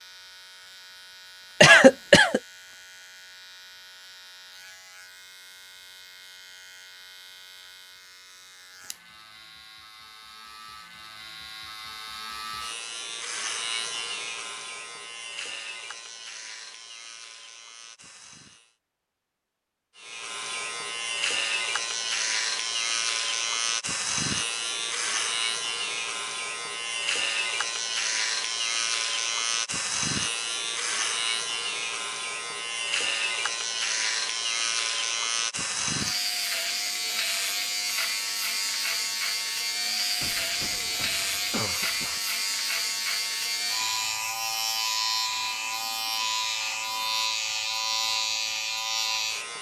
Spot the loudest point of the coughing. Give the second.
2 s.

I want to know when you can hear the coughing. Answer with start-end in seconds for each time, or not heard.
1.6-2.4, 40.2-42.2.